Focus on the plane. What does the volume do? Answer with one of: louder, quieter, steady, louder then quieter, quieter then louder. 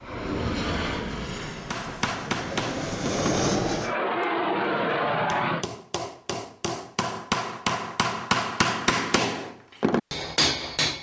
quieter then louder.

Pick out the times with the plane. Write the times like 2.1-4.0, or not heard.
0.0-5.7.